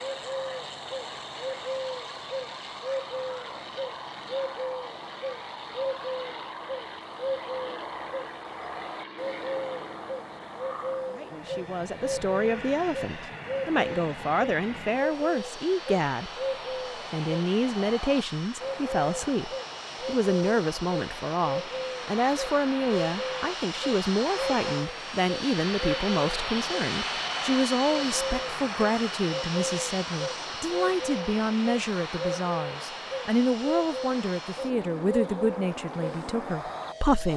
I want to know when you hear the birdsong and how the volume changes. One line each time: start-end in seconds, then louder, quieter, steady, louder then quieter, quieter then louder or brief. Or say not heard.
0.0-37.3 steady.